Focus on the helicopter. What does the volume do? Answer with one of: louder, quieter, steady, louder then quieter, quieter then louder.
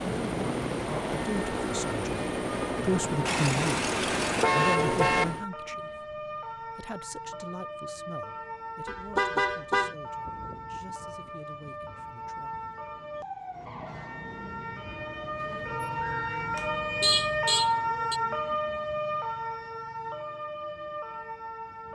steady.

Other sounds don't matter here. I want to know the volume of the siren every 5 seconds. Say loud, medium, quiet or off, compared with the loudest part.
medium, medium, medium, loud, medium.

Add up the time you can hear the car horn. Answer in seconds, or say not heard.
5 s.